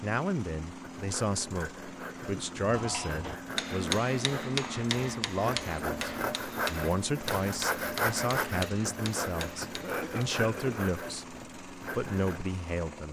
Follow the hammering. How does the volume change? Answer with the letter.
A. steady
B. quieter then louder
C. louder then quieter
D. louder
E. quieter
E.